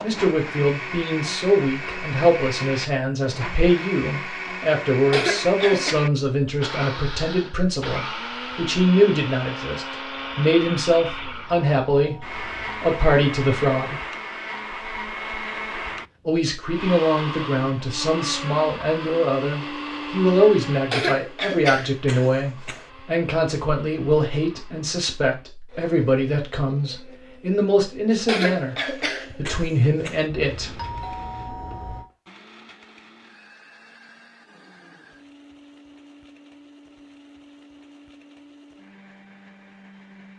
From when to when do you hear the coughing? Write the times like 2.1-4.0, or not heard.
5.1-6.0, 20.9-22.9, 28.2-30.2.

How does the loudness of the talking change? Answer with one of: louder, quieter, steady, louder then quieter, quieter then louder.
steady.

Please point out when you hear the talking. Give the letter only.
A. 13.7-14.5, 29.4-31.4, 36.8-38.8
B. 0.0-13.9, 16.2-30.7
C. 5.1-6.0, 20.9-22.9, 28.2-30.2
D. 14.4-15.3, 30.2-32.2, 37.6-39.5
B.